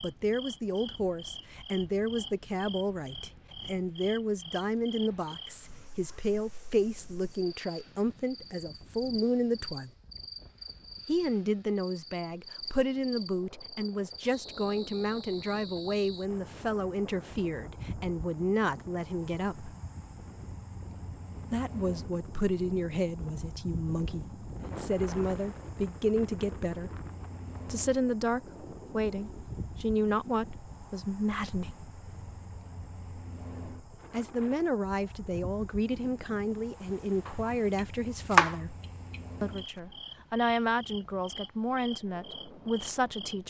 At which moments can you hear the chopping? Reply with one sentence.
The chopping can be heard from 37.2 to 39.6 s.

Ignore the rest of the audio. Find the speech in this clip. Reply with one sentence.
The speech can be heard from 0.0 to 9.9 s, from 11.1 to 19.7 s, from 21.5 to 26.9 s, from 27.6 to 31.8 s, from 34.1 to 38.8 s and from 39.4 to 43.4 s.